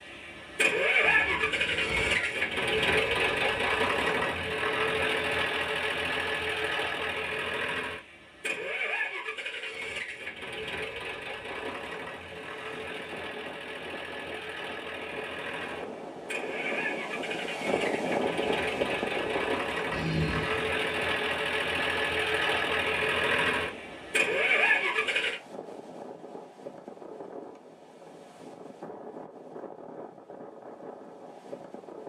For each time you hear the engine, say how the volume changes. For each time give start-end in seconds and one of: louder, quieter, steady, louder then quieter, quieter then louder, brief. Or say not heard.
0.0-25.4 quieter then louder.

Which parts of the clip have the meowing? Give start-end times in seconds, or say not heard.
1.0-2.3, 19.9-20.8.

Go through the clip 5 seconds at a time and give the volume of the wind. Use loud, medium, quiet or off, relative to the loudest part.
off, off, medium, loud, medium, medium, medium.